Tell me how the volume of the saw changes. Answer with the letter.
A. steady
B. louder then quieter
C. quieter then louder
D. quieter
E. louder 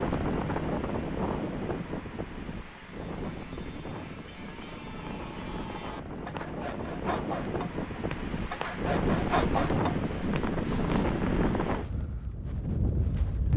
E.